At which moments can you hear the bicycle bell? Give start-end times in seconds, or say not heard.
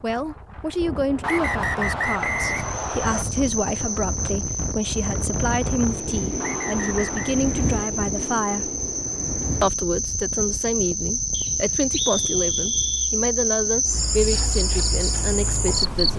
not heard.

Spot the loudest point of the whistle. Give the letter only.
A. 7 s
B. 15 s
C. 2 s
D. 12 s
C.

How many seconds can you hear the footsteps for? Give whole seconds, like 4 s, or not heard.
not heard.